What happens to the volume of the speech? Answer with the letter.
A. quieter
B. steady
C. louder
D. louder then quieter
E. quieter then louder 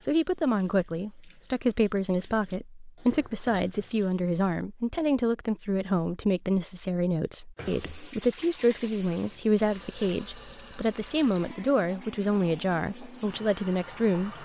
B.